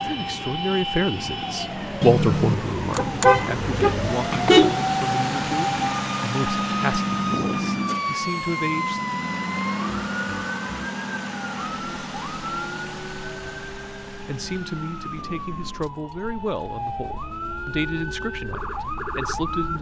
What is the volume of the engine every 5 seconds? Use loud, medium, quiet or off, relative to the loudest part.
medium, loud, medium, quiet.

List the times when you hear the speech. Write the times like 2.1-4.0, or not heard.
0.0-9.0, 14.2-19.7.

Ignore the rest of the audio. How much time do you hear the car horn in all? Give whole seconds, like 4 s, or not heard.
3 s.